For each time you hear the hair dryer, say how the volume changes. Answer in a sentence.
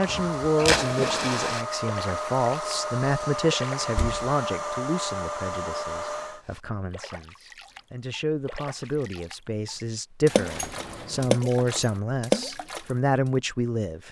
The hair dryer can be heard from 0.0 to 6.4 s, at a steady volume.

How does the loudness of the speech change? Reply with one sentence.
The volume of the speech goes down, then up.